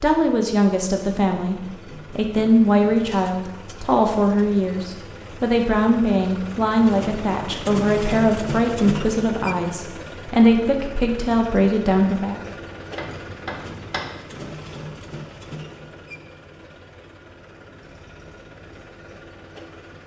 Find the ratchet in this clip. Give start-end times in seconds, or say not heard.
12.9-14.1.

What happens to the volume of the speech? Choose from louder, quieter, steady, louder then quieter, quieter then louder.
steady.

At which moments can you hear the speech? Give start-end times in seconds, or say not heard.
0.0-12.4.